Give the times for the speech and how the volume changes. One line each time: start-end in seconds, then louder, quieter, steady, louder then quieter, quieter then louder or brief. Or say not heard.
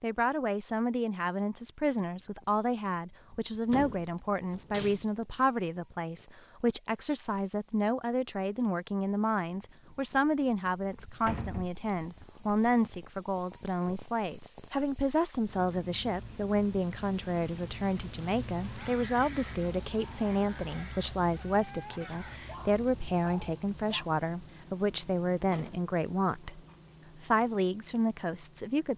0.0-26.6 steady
27.2-28.9 brief.